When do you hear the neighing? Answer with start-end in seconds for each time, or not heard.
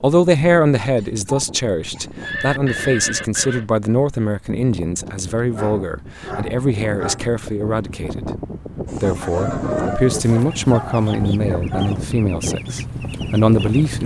2.2-3.6.